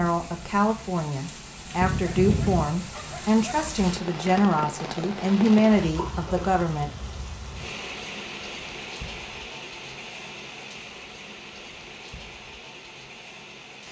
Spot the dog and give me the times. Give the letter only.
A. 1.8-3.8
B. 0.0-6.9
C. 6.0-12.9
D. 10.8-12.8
A.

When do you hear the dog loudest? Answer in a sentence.
The volume of the dog peaks at 2 seconds.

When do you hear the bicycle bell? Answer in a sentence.
You can't hear the bicycle bell here.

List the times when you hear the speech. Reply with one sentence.
You can hear the speech from 0.0 to 6.9 s.